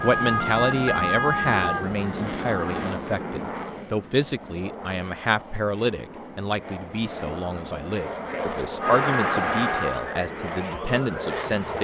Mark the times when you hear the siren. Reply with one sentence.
The siren can be heard from 0.0 to 2.9 s and from 8.8 to 11.7 s.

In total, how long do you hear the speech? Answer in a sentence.
You can hear the speech for 12 seconds altogether.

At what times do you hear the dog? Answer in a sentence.
You can't hear the dog here.